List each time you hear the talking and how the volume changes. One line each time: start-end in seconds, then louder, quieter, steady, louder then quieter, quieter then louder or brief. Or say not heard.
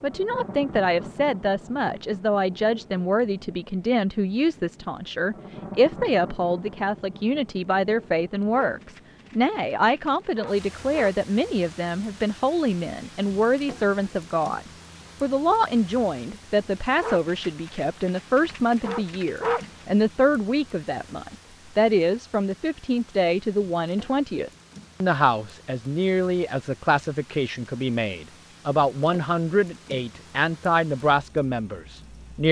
0.0-14.6 steady
15.2-32.4 steady.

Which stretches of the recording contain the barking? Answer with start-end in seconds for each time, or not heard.
8.5-11.2, 17.0-19.9.